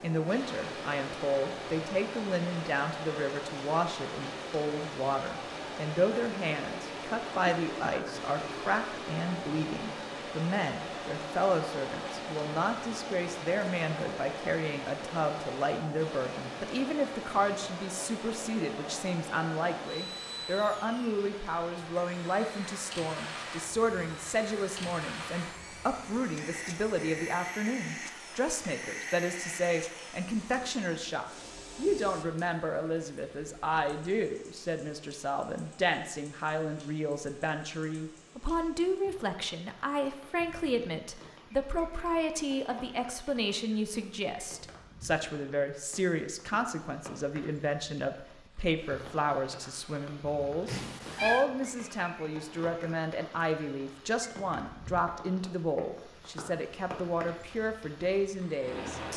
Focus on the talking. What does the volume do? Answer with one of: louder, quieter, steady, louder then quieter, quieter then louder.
steady.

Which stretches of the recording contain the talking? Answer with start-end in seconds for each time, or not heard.
0.0-59.1.